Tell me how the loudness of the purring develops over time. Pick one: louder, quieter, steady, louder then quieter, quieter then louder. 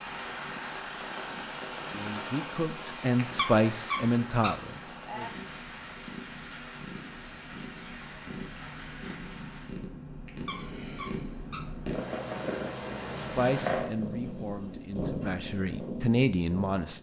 louder.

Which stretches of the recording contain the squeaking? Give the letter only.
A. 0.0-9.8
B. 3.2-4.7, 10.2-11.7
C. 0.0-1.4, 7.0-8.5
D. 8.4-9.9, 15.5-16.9
B.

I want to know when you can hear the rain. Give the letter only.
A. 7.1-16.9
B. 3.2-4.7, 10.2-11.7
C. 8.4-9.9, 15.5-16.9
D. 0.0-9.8
D.